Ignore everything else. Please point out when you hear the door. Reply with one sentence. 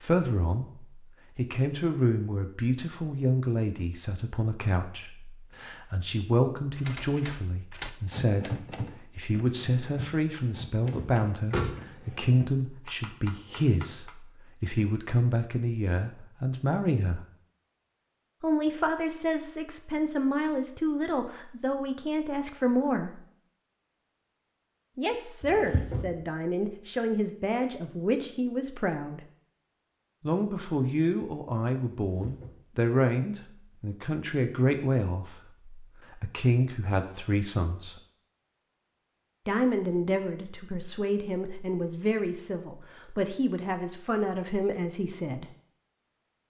You can hear the door from 10.9 to 11.8 s, from 25.4 to 26.1 s and from 31.9 to 32.6 s.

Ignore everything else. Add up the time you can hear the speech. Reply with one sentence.
The speech can be heard for 40 seconds in total.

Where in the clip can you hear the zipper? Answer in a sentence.
The zipper can't be heard in this clip.